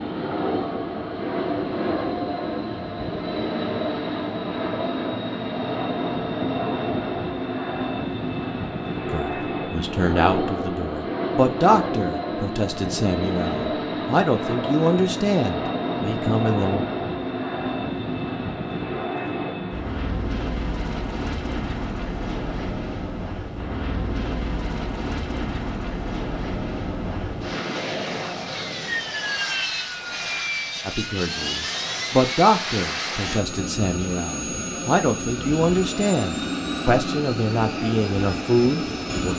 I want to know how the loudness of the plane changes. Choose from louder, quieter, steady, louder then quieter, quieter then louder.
steady.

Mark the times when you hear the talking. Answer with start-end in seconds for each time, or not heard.
9.1-16.9, 30.9-39.3.